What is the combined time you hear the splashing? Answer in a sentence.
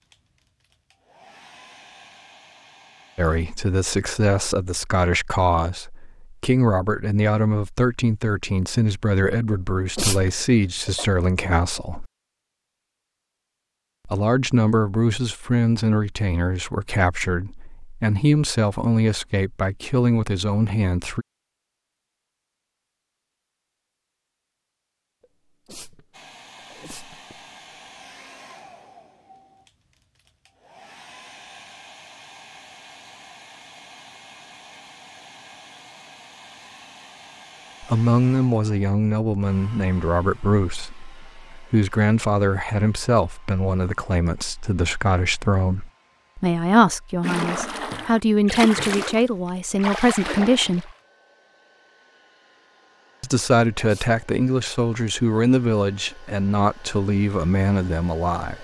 The splashing can be heard for 4 seconds in total.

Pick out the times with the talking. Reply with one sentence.
The talking can be heard from 3.1 to 12.1 s, from 14.1 to 21.2 s, from 37.8 to 50.9 s and from 53.2 to 58.5 s.